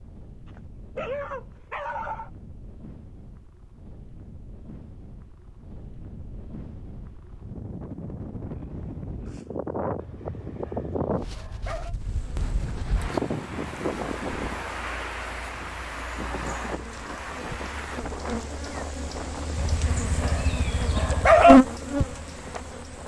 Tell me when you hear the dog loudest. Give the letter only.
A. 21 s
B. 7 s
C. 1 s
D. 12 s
A.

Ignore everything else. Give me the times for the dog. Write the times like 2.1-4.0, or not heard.
0.5-2.3, 9.9-11.9, 19.6-21.6.